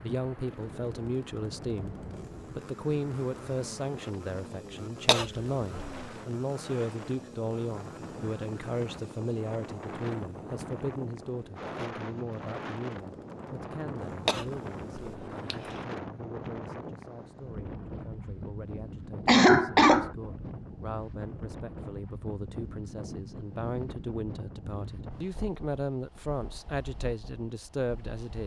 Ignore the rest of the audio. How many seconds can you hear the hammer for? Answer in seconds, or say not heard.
not heard.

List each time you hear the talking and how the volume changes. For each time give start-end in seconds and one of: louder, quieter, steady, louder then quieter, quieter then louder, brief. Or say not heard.
0.0-1.9 brief
2.5-28.4 quieter then louder.